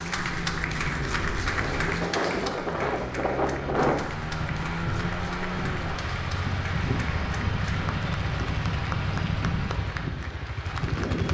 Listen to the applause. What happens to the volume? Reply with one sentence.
The volume of the applause goes down.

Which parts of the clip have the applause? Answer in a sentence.
You can hear the applause from 0.0 to 11.2 s.